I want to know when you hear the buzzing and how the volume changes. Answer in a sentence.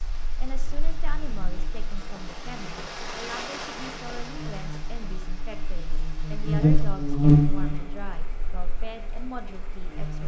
The buzzing can be heard from 0.0 to 10.2 s, getting louder then quieter.